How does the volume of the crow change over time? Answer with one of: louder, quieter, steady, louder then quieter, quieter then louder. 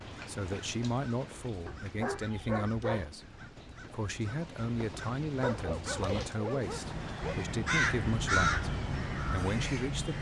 louder.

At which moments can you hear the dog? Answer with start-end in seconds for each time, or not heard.
1.6-3.1, 5.4-7.3.